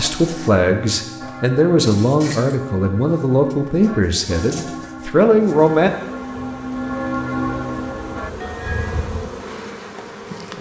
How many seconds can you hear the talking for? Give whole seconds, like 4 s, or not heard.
6 s.